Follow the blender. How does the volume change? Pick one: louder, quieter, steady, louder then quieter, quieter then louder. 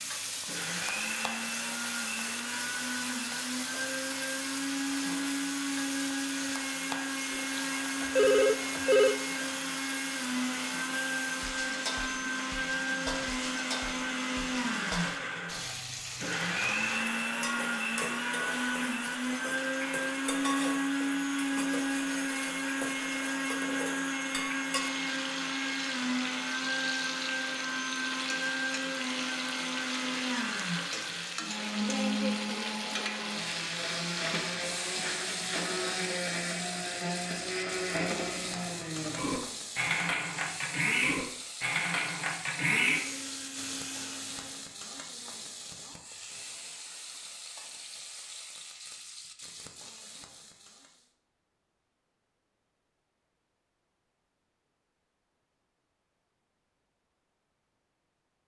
steady.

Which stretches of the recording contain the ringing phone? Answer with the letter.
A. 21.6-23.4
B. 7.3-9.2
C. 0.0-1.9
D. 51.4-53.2
B.